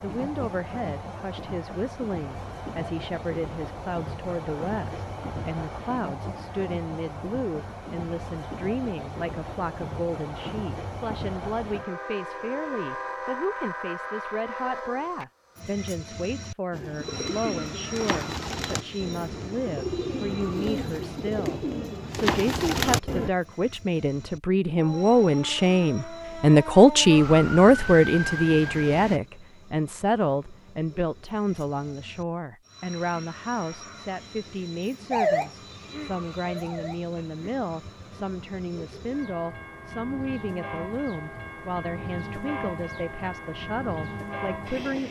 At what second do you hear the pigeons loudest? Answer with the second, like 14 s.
23 s.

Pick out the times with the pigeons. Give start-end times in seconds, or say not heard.
16.7-23.3.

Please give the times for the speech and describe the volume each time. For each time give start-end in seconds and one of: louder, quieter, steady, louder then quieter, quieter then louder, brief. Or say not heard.
0.0-45.0 louder then quieter.